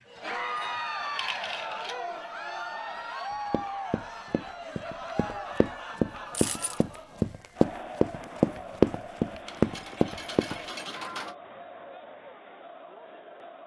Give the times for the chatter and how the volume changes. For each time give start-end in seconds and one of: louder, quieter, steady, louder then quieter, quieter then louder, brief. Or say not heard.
0.1-13.6 quieter.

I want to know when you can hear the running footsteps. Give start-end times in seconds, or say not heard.
3.3-10.6.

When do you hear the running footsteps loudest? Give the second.
9 s.